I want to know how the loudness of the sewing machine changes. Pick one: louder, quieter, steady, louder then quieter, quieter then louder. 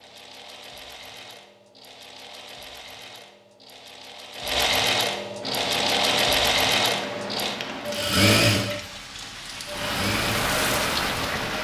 louder.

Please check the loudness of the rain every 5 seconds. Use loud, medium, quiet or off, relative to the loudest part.
off, medium, loud.